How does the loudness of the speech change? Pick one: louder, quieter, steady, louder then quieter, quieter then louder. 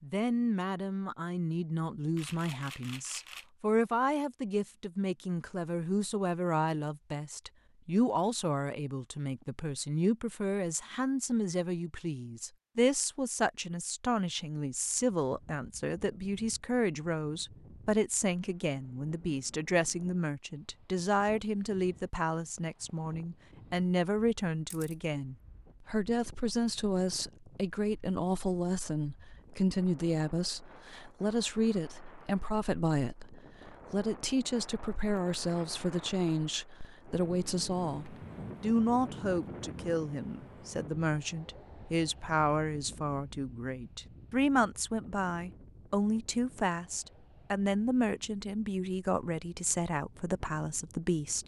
steady.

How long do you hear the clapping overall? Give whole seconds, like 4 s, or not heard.
not heard.